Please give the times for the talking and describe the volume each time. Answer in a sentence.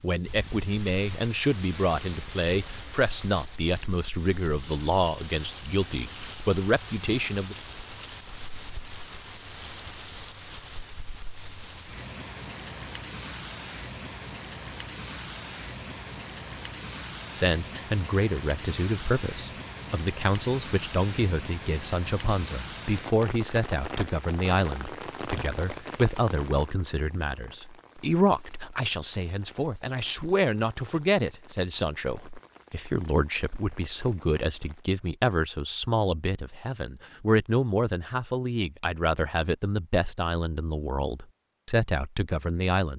The talking can be heard from 0.0 to 7.5 s, at a steady volume; and from 17.3 to 42.9 s, at a steady volume.